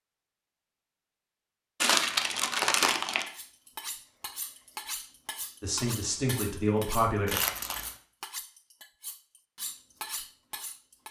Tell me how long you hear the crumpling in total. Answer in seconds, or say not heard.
2 s.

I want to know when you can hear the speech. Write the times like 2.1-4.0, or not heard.
5.6-7.3.